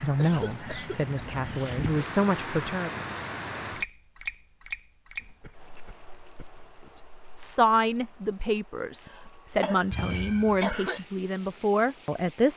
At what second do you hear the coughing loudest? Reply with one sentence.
The loudest moment of the coughing is at 11 seconds.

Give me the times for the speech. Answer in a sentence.
You can hear the speech from 0.0 to 2.9 s and from 6.9 to 12.5 s.